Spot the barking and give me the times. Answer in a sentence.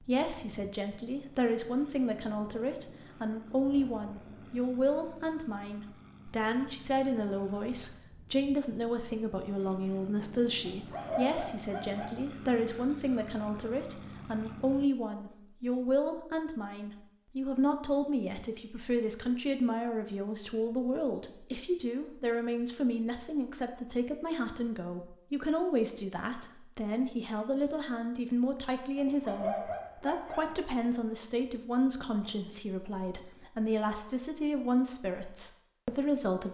The barking can be heard from 10.7 to 12.2 s and from 28.9 to 30.6 s.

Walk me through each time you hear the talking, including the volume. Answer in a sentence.
The talking can be heard from 0.0 to 36.4 s, at a steady volume.